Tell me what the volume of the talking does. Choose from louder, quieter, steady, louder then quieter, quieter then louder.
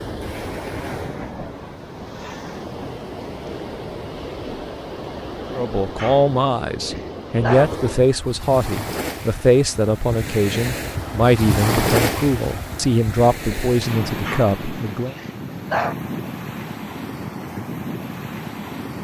steady.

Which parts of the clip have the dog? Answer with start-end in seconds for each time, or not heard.
6.0-7.7, 14.2-15.9.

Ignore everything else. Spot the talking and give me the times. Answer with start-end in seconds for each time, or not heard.
5.5-15.2.